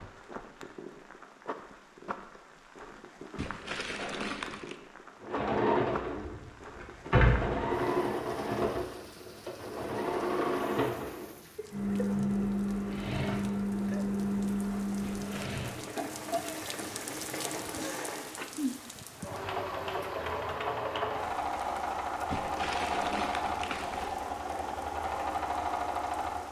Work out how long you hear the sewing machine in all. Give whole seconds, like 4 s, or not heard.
21 s.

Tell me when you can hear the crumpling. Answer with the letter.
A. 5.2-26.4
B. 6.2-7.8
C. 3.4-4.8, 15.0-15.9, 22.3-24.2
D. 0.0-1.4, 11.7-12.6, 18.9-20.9
C.